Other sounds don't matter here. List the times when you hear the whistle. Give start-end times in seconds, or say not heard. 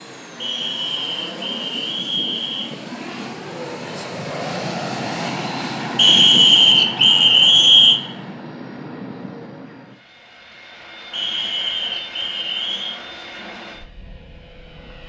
0.4-2.7, 6.0-8.0, 11.1-12.9.